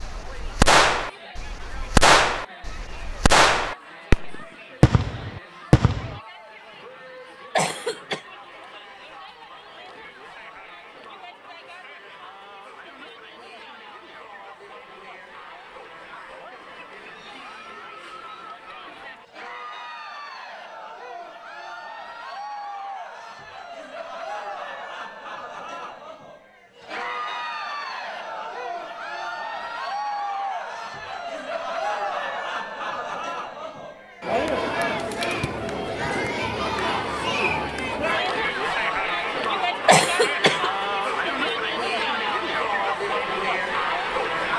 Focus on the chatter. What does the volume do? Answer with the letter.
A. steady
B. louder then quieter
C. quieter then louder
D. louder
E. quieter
D.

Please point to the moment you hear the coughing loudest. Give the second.
40 s.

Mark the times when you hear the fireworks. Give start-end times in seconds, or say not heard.
0.0-6.2.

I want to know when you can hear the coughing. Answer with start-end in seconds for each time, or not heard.
7.5-8.2, 39.9-40.7.